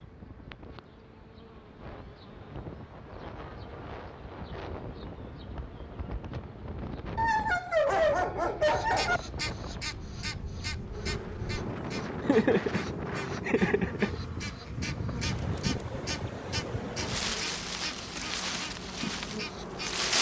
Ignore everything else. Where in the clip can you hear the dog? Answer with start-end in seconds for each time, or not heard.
7.2-9.2.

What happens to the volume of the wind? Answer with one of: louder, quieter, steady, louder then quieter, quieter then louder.
louder.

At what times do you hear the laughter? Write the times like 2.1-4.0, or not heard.
12.2-14.2.